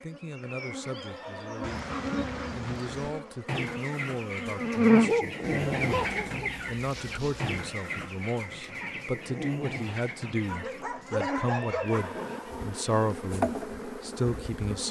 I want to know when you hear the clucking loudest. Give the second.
6 s.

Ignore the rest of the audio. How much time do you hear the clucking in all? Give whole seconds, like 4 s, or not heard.
8 s.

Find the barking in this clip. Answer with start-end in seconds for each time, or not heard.
1.6-3.1, 5.0-6.5, 10.4-12.4.